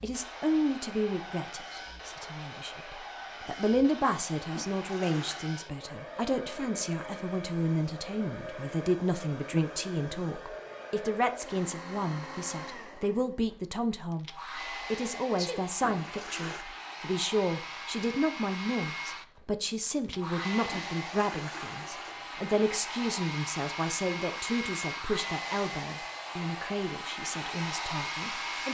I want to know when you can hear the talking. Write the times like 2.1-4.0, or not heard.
0.0-28.6.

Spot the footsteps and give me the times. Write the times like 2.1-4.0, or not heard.
not heard.